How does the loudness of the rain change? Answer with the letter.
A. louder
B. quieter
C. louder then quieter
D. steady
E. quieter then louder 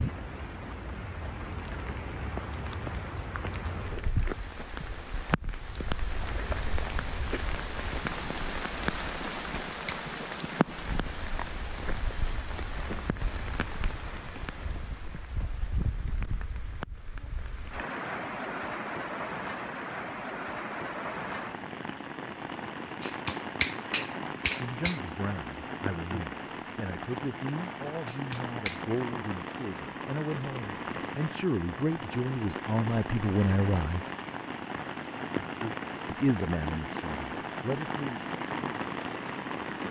D.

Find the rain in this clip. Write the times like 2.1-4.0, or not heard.
0.0-39.8.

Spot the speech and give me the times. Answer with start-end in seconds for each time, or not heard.
24.6-34.0, 36.0-38.2.